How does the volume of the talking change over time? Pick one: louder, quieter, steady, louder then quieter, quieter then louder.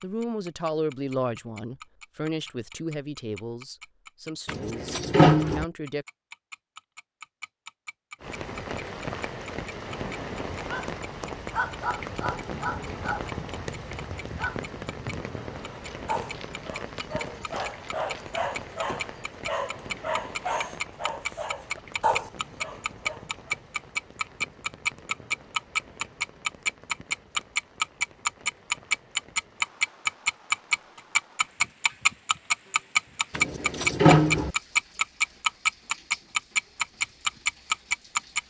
quieter.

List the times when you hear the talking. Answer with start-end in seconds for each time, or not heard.
0.0-6.0.